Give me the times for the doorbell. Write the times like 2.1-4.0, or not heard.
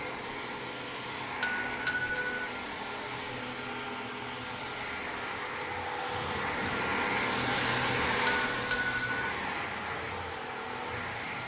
1.4-2.5, 8.2-9.3.